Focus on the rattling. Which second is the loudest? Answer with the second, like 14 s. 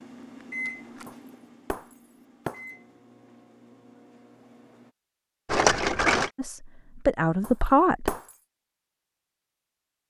6 s.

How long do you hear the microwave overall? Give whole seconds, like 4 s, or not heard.
5 s.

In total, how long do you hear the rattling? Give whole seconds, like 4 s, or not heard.
2 s.